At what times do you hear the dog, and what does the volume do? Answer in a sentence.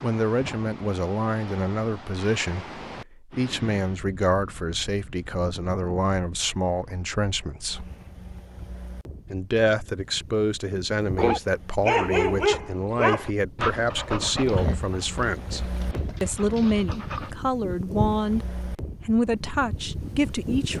You can hear the dog from 11.2 to 17.4 s, getting quieter.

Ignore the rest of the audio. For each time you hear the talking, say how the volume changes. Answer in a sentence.
The talking can be heard from 0.0 to 7.9 s, at a steady volume; and from 9.3 to 20.7 s, at a steady volume.